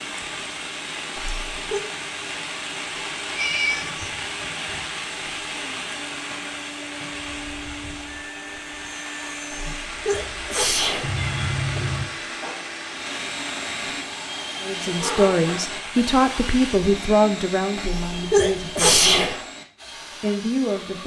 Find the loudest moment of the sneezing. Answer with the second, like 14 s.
19 s.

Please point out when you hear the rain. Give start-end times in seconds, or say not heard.
0.0-16.8.